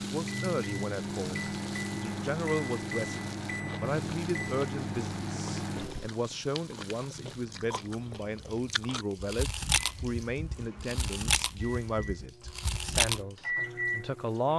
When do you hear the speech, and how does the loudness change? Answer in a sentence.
The speech can be heard from 0.0 to 14.5 s, at a steady volume.